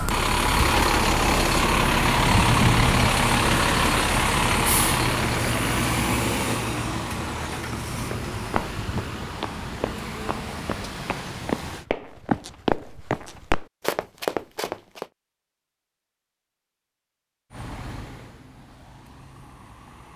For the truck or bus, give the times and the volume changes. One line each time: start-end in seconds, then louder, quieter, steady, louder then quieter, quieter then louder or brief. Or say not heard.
0.0-11.8 quieter
17.6-20.1 brief.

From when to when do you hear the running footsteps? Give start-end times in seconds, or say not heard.
7.9-15.1.